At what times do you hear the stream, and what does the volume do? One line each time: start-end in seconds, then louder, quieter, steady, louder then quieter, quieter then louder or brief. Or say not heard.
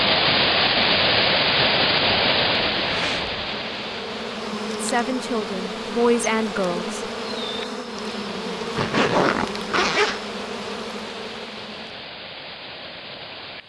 0.0-13.6 quieter.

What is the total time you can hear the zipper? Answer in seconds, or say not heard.
2 s.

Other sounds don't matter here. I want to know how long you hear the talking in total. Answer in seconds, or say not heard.
2 s.